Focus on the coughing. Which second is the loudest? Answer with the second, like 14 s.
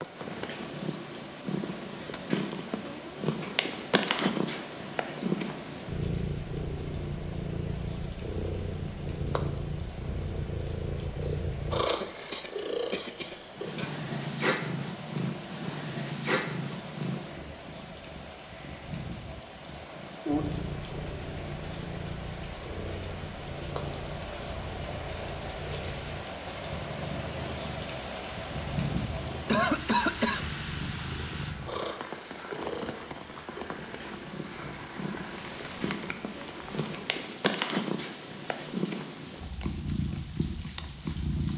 30 s.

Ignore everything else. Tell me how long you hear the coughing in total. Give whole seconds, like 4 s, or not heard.
3 s.